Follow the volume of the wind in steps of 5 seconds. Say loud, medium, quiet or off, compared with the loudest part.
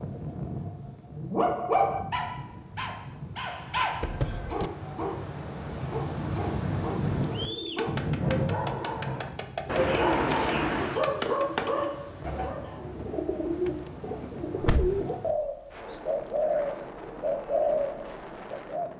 medium, loud, quiet, medium.